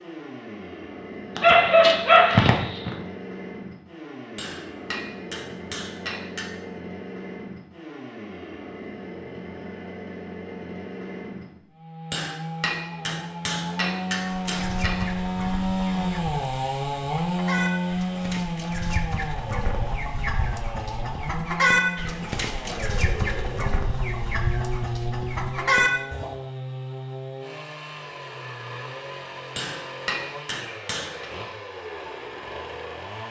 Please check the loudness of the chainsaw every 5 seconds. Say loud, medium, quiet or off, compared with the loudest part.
medium, medium, medium, loud, medium, medium, medium.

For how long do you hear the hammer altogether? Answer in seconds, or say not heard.
7 s.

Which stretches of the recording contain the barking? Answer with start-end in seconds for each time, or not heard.
1.4-2.9.